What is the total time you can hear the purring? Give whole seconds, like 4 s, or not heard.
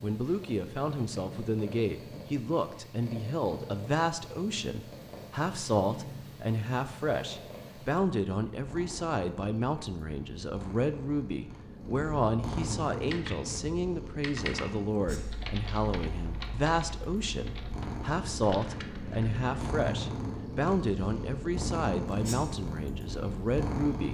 24 s.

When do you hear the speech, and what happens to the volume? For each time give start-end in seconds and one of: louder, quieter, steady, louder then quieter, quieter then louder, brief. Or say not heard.
0.0-24.0 steady.